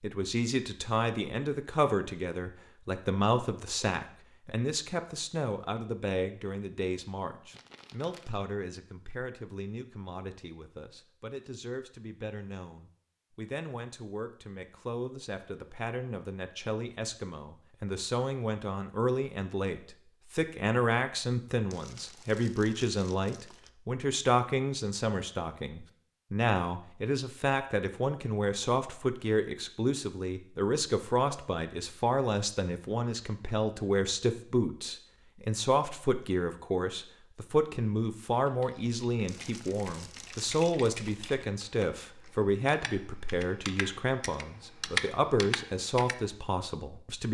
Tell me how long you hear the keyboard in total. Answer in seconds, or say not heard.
8 s.